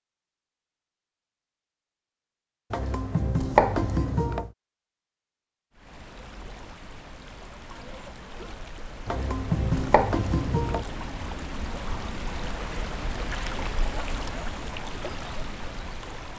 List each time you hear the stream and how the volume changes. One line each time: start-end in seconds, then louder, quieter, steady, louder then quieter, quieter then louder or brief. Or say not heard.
5.7-16.3 louder.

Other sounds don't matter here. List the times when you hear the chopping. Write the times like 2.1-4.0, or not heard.
2.7-4.5, 9.1-10.8.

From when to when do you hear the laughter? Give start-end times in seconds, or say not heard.
not heard.